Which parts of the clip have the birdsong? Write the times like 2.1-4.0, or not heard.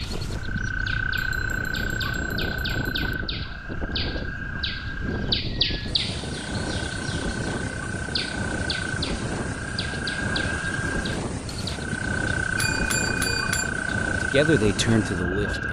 0.0-11.8.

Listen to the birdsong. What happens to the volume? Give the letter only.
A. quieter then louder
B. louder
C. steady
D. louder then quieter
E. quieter
D.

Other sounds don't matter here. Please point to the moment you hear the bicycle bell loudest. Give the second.
13 s.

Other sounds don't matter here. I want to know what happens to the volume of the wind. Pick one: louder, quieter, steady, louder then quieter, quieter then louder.
steady.